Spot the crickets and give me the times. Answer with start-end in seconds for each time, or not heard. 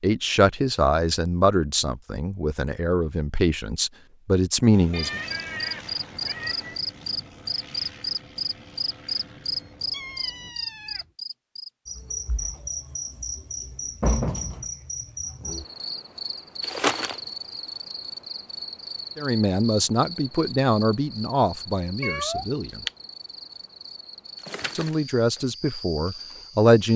5.0-26.9.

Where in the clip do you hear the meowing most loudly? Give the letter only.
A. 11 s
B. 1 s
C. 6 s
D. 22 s
D.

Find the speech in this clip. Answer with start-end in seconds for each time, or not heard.
0.0-5.2, 19.1-22.8, 24.8-26.9.